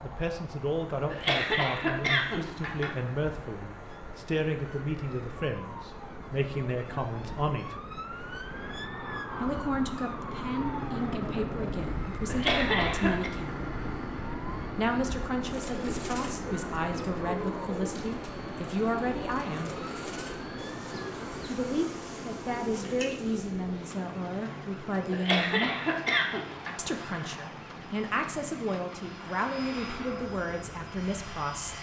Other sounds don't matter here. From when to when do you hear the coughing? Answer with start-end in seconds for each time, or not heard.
1.1-3.0, 12.2-13.3, 25.1-26.8.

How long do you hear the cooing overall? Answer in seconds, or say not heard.
8 s.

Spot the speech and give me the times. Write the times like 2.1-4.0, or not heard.
0.0-7.8, 9.4-13.6, 14.8-19.8, 21.4-25.7, 26.8-31.7.